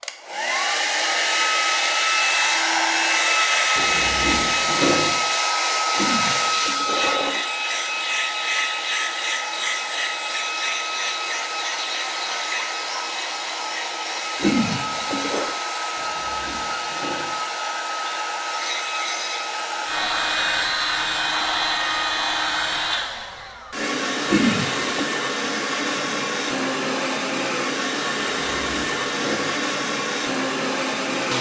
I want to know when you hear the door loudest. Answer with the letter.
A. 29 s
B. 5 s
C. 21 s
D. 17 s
B.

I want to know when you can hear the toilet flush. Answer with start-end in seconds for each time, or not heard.
6.0-7.5, 14.3-15.6, 24.2-25.1.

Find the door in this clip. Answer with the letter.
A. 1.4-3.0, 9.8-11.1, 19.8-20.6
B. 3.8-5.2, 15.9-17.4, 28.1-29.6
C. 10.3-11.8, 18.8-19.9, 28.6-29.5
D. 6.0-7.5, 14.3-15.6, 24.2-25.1
B.